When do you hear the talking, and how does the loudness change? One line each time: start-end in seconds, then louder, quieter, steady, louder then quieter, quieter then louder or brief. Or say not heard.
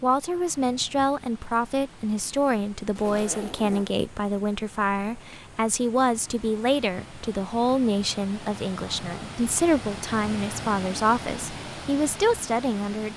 0.0-13.1 steady.